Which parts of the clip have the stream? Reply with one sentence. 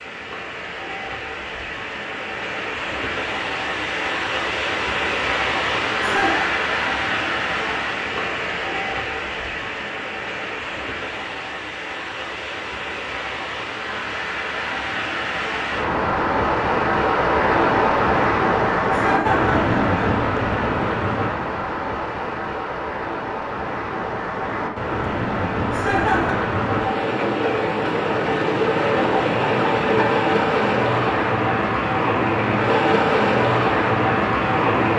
The stream can be heard from 0.0 to 34.9 s.